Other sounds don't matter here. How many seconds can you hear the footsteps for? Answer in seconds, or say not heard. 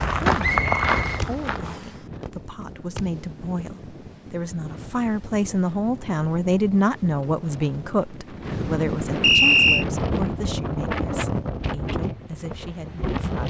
2 s.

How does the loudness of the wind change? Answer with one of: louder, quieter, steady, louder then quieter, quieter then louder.
louder.